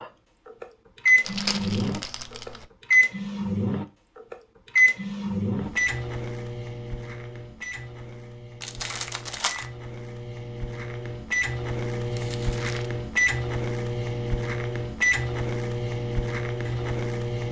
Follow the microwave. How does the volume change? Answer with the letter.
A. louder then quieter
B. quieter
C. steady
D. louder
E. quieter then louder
E.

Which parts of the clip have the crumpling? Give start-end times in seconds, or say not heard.
1.2-2.6, 8.6-9.7, 12.1-12.9.